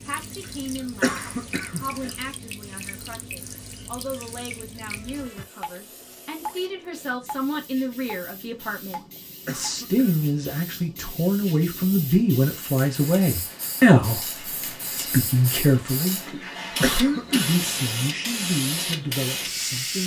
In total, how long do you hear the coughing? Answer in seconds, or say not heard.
3 s.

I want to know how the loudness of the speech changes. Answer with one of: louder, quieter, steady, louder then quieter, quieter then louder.
louder then quieter.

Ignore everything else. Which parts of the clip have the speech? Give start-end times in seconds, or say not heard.
0.0-20.0.